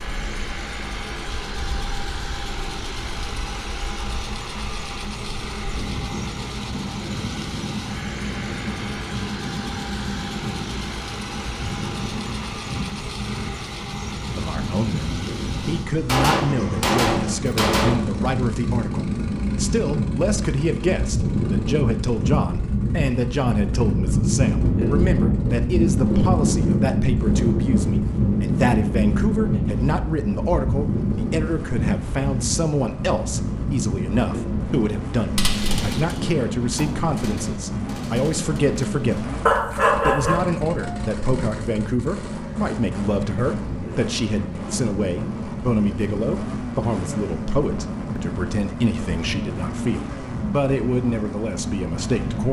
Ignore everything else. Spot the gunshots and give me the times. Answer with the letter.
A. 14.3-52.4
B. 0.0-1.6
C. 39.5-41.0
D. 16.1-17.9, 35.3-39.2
D.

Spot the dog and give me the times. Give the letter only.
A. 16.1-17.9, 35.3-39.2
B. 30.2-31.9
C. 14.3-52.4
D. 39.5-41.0
D.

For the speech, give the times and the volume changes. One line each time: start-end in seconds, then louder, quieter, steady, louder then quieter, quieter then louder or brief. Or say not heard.
14.3-52.4 steady.